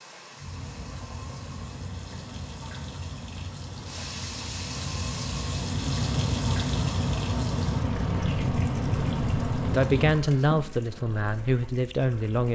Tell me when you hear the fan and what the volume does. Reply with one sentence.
The fan can be heard from 0.1 to 10.2 s, getting louder.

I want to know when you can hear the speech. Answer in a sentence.
You can hear the speech from 9.7 to 12.5 s.